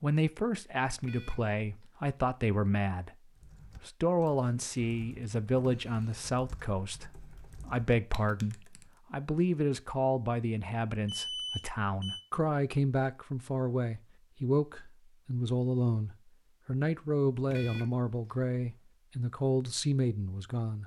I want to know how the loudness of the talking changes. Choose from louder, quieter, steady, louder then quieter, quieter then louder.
steady.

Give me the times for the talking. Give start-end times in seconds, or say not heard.
0.0-20.8.